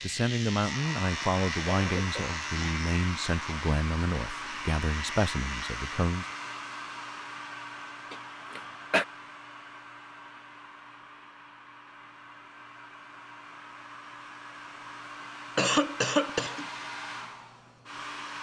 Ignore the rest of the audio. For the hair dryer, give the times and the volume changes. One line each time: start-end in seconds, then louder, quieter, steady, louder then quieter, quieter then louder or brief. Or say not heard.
0.0-18.3 quieter then louder.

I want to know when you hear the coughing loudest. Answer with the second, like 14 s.
16 s.